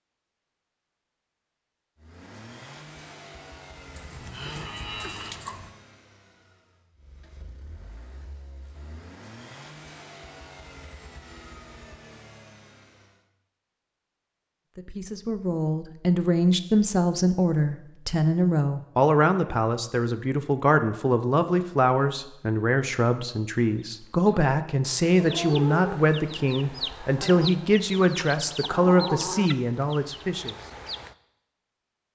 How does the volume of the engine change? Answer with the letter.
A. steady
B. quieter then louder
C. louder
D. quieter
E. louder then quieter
B.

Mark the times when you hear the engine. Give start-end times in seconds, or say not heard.
1.9-13.2.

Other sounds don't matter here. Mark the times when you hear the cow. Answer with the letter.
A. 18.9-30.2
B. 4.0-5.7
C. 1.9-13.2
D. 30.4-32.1
B.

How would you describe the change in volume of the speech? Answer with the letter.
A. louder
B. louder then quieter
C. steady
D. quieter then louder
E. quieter
C.